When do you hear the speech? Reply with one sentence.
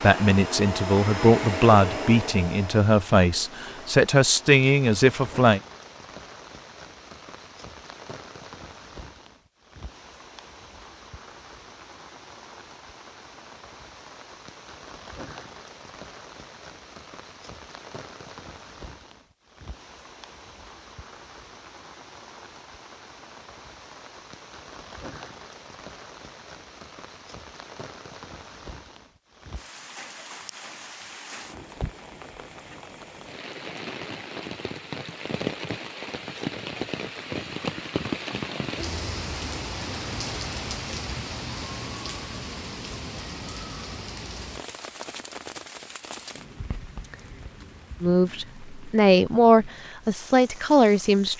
You can hear the speech from 0.0 to 5.6 s and from 48.0 to 51.3 s.